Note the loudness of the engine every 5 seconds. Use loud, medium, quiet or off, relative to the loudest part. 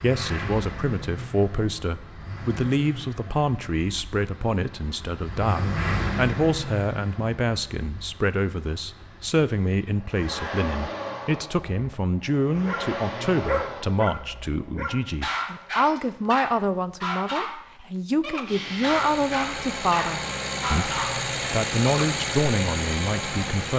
medium, medium, medium, medium, loud.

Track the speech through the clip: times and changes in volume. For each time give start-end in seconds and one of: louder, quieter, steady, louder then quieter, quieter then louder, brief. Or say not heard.
0.0-23.7 steady.